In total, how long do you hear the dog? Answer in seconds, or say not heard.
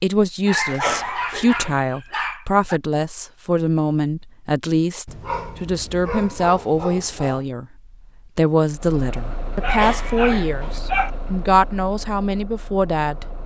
6 s.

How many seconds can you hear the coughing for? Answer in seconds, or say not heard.
2 s.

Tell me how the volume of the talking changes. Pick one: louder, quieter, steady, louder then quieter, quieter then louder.
steady.